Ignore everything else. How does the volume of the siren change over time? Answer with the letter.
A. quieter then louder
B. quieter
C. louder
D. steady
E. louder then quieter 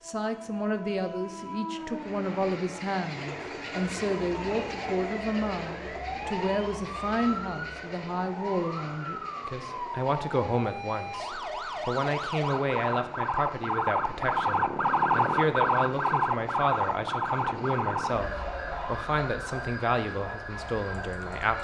E.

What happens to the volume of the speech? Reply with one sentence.
The volume of the speech stays about the same.